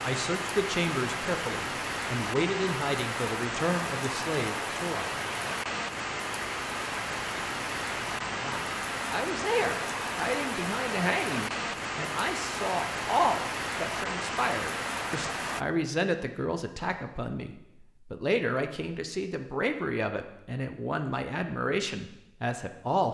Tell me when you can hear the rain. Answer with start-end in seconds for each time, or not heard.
0.0-15.7.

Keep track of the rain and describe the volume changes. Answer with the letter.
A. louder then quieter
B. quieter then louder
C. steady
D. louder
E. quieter
C.